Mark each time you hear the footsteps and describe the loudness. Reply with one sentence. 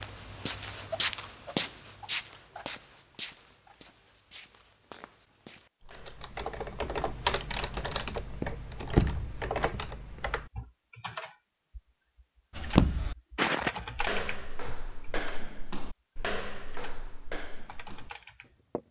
You can hear the footsteps from 0.0 to 6.2 s, getting quieter; briefly from 8.3 to 10.4 s; and from 12.6 to 18.8 s, getting quieter.